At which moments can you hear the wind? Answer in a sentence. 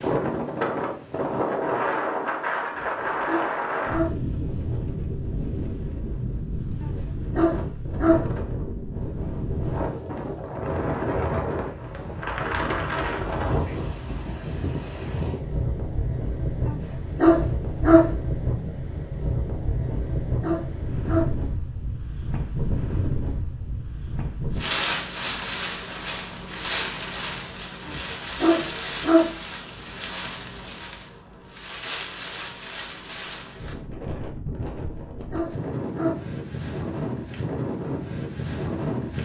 You can hear the wind from 0.0 to 39.2 s.